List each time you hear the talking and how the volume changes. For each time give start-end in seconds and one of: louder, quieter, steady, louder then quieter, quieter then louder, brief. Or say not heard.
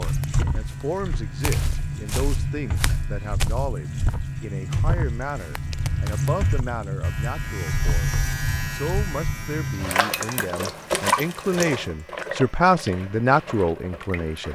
0.0-14.5 louder.